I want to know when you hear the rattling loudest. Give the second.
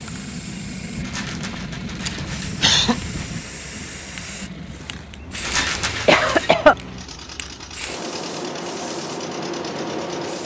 6 s.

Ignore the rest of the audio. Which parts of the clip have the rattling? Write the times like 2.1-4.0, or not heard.
1.0-3.4, 5.4-6.5.